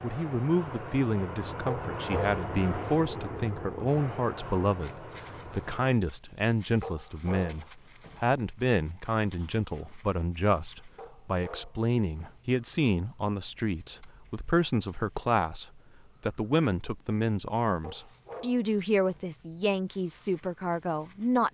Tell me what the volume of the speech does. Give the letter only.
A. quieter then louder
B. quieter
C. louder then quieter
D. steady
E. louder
D.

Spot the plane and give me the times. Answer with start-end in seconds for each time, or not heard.
0.0-6.0.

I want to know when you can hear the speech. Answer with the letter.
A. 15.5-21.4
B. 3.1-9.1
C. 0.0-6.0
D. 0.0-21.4
D.